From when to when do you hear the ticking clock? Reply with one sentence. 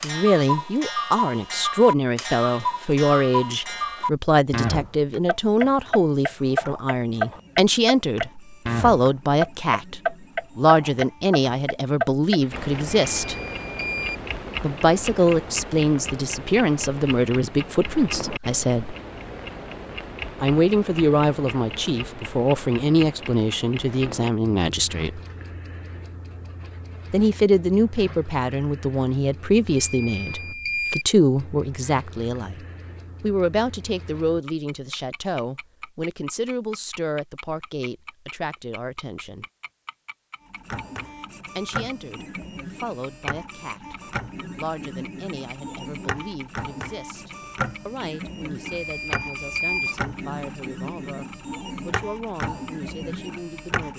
The ticking clock can be heard from 0.0 to 53.8 s.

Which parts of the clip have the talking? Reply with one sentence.
You can hear the talking from 0.0 to 13.3 s, from 14.6 to 18.9 s, from 20.4 to 25.2 s, from 27.1 to 32.6 s, from 33.2 to 39.5 s and from 41.5 to 53.9 s.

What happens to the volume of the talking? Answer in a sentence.
The volume of the talking goes down.